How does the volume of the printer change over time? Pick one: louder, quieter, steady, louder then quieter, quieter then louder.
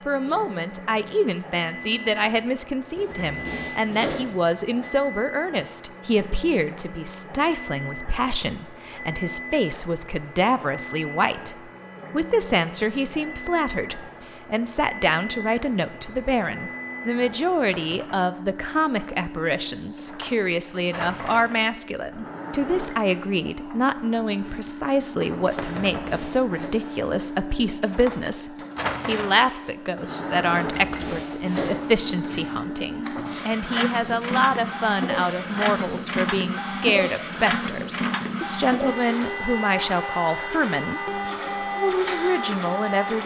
louder.